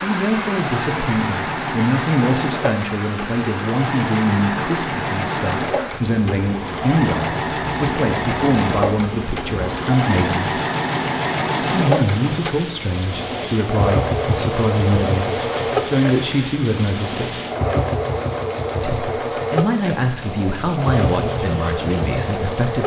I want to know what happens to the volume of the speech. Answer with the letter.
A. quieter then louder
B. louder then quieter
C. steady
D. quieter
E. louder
C.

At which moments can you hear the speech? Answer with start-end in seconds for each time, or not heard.
0.0-10.6, 11.6-17.4, 18.8-22.8.